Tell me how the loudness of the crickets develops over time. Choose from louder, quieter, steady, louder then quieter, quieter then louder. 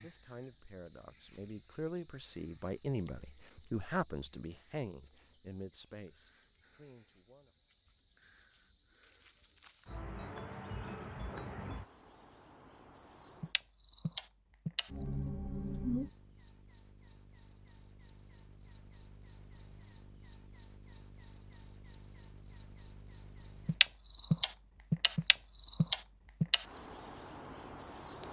louder.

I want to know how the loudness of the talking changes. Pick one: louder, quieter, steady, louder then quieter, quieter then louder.
louder then quieter.